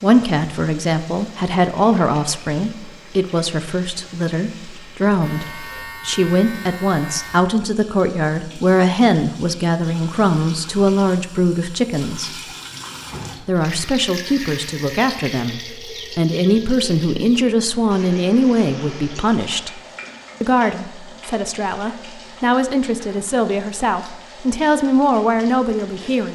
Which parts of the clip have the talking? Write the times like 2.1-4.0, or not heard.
0.0-12.3, 13.4-19.8, 20.4-26.3.